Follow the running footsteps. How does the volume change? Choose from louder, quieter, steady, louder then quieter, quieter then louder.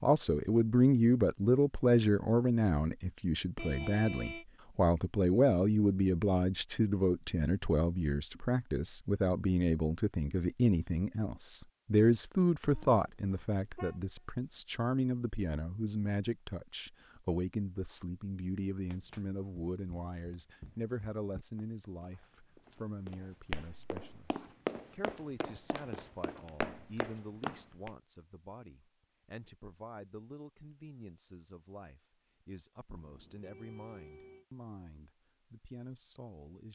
louder.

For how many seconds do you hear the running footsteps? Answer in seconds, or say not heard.
9 s.